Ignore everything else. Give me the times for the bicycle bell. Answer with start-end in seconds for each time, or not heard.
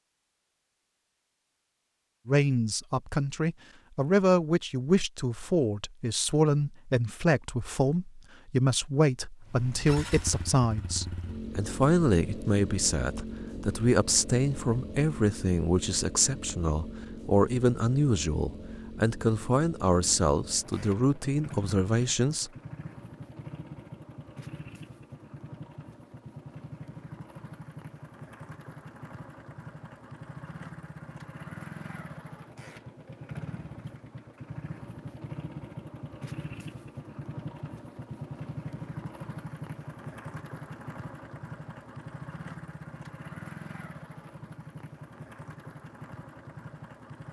not heard.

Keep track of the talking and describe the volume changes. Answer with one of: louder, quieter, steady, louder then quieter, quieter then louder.
steady.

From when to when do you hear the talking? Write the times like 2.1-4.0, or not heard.
2.2-22.5.